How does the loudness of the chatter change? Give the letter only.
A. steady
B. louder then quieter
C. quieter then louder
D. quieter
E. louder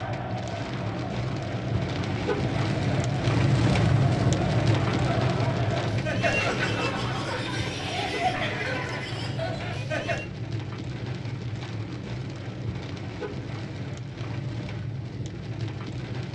E.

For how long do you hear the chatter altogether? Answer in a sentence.
The chatter can be heard for 10 seconds in total.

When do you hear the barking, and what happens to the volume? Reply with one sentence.
You can't hear the barking here.